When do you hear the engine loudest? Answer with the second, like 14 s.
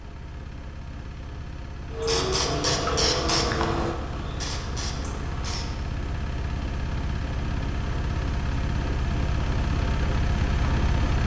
11 s.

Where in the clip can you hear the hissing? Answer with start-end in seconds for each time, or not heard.
1.9-5.8.